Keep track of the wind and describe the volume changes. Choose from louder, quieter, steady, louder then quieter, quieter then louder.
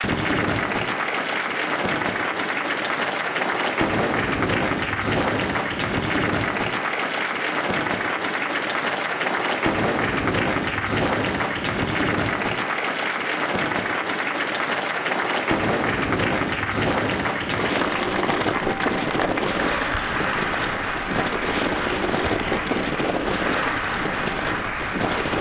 steady.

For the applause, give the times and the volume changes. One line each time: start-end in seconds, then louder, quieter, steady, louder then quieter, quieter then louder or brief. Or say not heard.
0.0-25.3 steady.